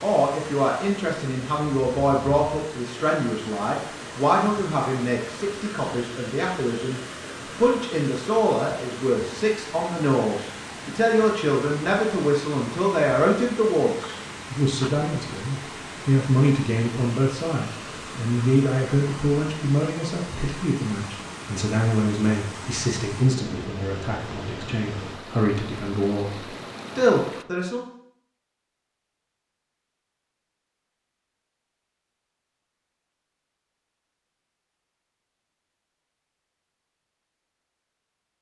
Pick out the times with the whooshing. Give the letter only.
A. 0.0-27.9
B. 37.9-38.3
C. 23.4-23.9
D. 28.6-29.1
C.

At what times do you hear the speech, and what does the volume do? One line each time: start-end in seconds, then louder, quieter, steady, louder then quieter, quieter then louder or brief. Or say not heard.
0.0-27.9 steady.